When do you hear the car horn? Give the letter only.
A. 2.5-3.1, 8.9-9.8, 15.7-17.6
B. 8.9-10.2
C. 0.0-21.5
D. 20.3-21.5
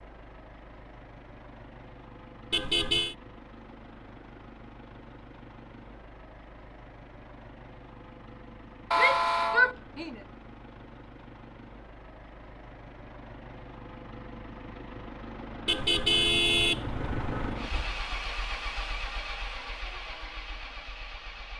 A.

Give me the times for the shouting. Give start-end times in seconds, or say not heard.
8.9-10.2.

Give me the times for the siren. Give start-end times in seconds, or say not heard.
not heard.